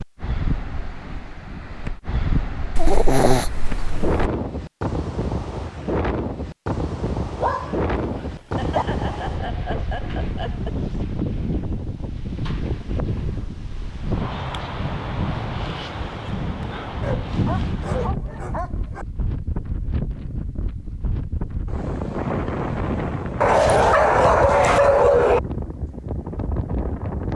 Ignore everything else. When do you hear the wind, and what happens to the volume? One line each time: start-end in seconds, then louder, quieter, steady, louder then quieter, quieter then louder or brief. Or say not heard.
0.0-27.3 steady.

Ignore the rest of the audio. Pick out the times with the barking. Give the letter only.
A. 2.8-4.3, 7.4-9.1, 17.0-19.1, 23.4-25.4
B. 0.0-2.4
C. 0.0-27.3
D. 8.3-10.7
A.